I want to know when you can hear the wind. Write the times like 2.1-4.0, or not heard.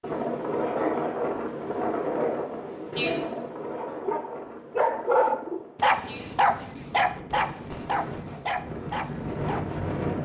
0.0-10.2.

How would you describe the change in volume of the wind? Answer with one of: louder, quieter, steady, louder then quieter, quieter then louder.
quieter then louder.